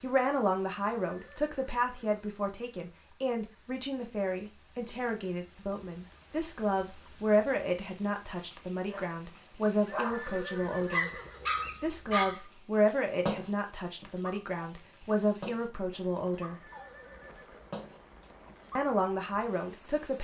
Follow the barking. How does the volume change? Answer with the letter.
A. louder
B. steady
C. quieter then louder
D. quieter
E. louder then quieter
D.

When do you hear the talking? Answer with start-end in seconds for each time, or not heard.
0.0-11.1, 11.8-16.6, 18.8-20.1.